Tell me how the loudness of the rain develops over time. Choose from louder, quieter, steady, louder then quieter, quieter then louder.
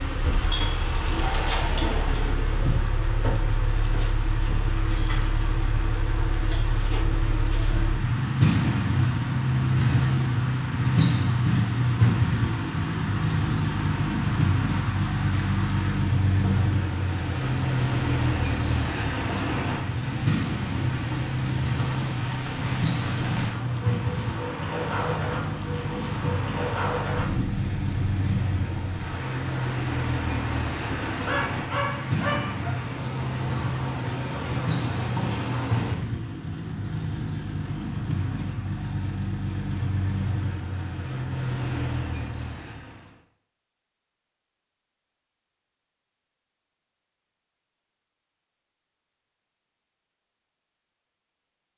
louder.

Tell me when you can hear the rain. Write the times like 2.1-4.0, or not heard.
0.0-36.0.